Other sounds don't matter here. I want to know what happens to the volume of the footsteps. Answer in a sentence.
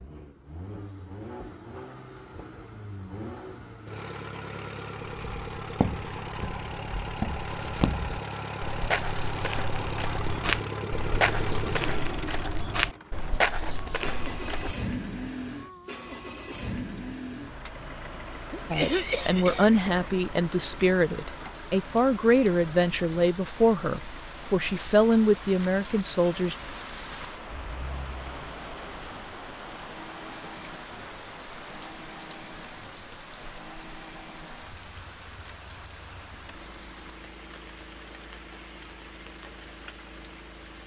The loudness of the footsteps goes up.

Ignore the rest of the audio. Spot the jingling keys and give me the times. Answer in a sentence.
The jingling keys can be heard from 27.5 to 28.6 s.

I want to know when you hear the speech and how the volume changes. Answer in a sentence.
The speech can be heard from 18.7 to 26.6 s, at a steady volume.